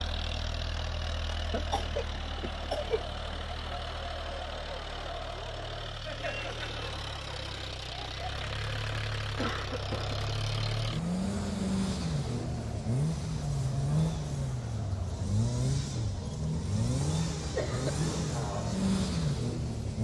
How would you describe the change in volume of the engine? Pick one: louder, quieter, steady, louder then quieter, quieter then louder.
louder.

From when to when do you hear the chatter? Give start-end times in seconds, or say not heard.
0.0-15.3.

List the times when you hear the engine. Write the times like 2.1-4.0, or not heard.
0.0-19.9.